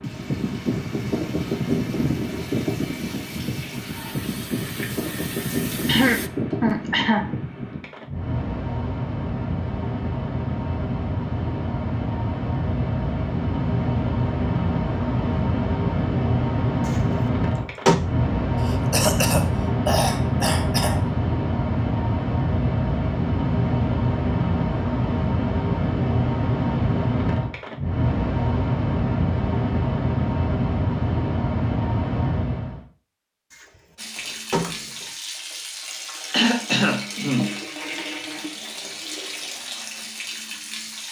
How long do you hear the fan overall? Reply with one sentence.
You can hear the fan for 33 seconds altogether.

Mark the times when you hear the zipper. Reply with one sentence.
You can't hear the zipper here.